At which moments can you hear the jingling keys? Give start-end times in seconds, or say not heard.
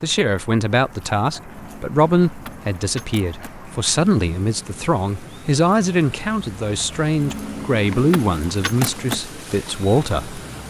1.5-3.5, 7.2-9.2.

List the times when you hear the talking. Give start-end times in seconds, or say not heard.
0.0-10.4.